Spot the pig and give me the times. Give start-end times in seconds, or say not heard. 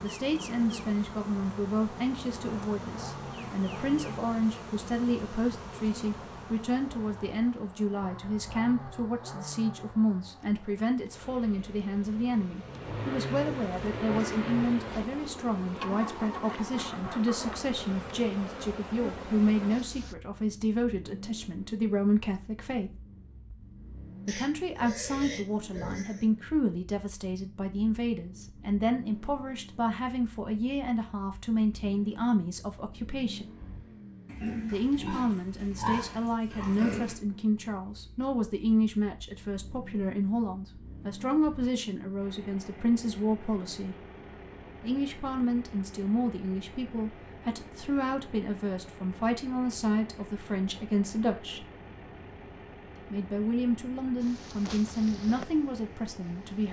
24.2-26.2, 34.2-37.1.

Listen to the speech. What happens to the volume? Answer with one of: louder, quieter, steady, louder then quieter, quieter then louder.
steady.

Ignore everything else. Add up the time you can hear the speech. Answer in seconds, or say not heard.
52 s.